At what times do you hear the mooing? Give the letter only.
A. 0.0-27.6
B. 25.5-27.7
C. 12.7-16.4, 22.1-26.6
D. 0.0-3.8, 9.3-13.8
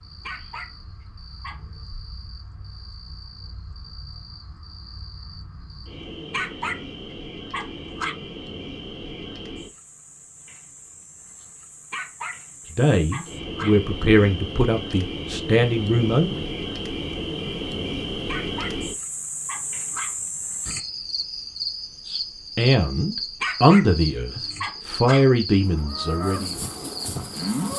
B.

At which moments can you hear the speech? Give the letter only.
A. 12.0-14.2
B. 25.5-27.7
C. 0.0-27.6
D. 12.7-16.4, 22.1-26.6
D.